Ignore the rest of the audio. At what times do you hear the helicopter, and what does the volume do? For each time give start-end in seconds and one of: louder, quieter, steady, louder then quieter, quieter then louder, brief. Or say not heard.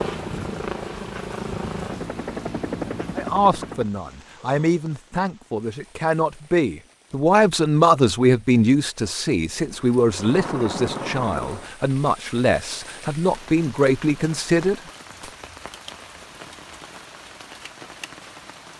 0.0-4.1 steady
9.4-11.8 brief.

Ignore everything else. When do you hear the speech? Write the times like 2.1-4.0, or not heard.
3.1-15.3.